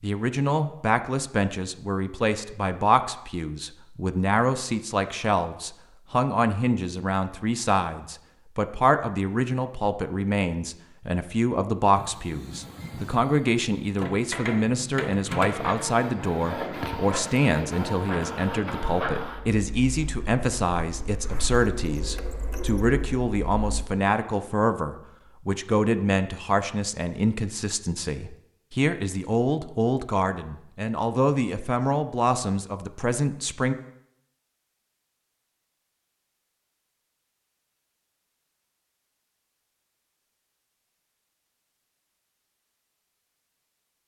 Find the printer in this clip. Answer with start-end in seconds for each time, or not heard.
11.9-23.9.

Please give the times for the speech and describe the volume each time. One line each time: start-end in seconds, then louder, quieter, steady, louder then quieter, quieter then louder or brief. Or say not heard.
0.0-33.8 steady.